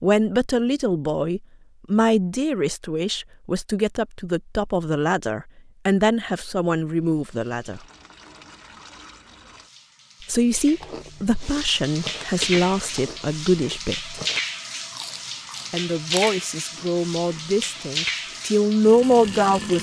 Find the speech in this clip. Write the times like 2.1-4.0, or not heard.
0.0-7.8, 10.2-14.2, 15.7-19.7.